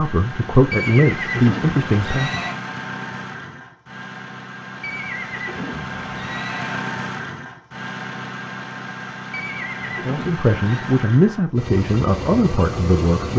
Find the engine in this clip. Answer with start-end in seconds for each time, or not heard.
0.0-13.3.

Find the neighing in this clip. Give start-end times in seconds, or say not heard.
0.7-2.5, 4.8-6.8, 9.3-10.8.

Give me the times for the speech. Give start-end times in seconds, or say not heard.
0.0-2.4, 10.0-13.3.